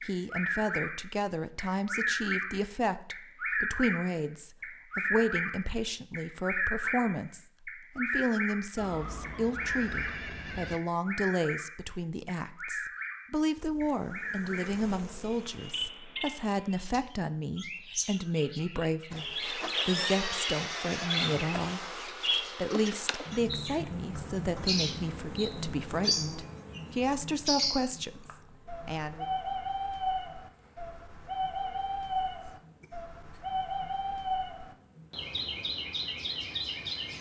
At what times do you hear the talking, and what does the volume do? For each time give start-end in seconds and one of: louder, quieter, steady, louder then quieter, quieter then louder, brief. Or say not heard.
0.0-29.2 steady.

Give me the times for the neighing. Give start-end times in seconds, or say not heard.
8.8-10.8, 19.9-21.4.